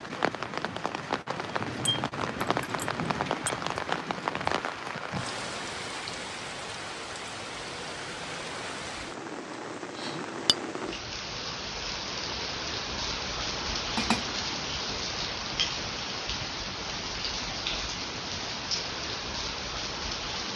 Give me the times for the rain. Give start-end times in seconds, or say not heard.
0.0-20.5.